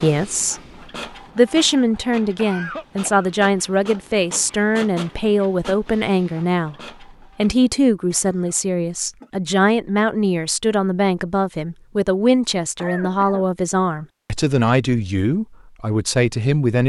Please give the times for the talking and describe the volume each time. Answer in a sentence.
You can hear the talking briefly from 0.0 to 0.6 s; and from 1.4 to 16.8 s, at a steady volume.